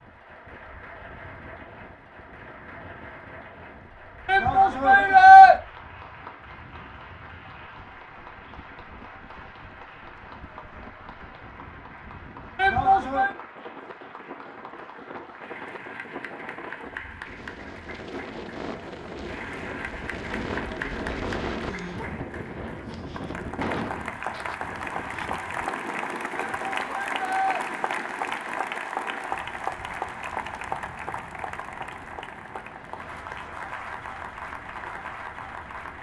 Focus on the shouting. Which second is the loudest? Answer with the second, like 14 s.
5 s.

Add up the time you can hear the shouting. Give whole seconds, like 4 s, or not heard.
3 s.